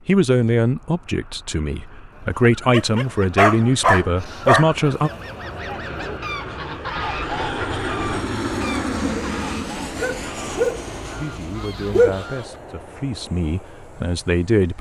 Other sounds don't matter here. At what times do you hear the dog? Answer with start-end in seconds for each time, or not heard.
2.7-4.7, 9.9-12.2.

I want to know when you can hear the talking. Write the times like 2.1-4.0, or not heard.
0.1-5.1, 11.2-14.7.